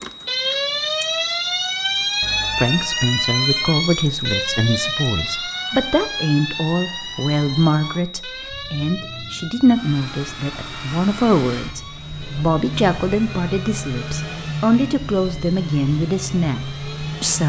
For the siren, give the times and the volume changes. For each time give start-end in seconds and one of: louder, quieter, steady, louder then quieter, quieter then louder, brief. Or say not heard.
0.0-17.3 quieter.